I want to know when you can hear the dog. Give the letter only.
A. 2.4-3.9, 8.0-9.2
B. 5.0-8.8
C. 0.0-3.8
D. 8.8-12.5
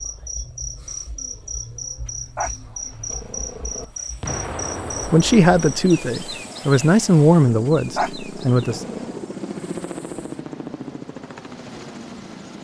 A.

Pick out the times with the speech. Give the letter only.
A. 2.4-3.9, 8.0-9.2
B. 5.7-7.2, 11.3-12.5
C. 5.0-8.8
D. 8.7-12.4
C.